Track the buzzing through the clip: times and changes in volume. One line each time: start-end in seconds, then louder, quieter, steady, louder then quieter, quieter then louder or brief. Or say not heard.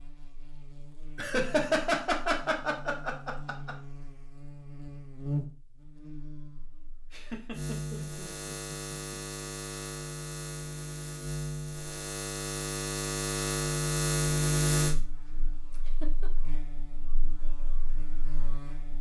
0.0-18.9 louder then quieter.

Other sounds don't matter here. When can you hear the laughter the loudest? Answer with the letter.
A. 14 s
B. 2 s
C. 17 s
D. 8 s
B.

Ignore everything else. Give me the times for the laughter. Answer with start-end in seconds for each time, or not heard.
1.1-3.8, 7.1-9.5, 15.7-16.3.